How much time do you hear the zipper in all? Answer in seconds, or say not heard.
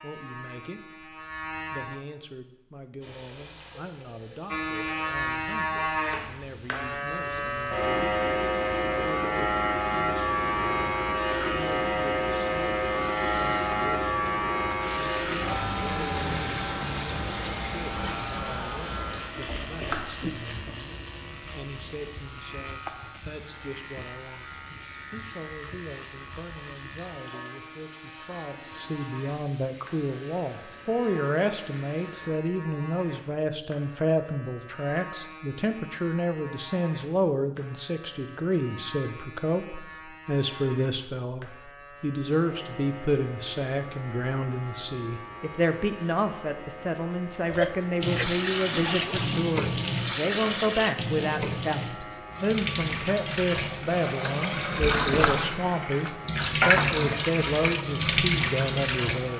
2 s.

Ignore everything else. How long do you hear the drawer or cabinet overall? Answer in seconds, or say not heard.
2 s.